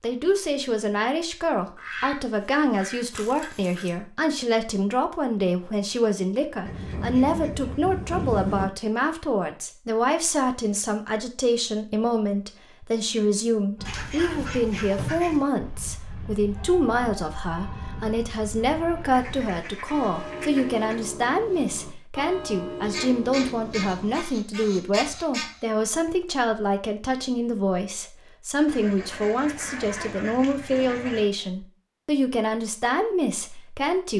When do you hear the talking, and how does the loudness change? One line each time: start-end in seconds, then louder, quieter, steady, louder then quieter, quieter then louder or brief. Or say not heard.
0.0-34.1 steady.